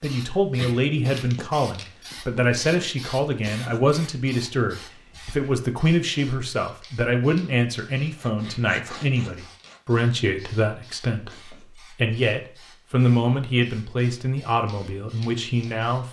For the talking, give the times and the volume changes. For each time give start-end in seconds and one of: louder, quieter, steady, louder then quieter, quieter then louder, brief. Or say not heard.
0.0-16.0 steady.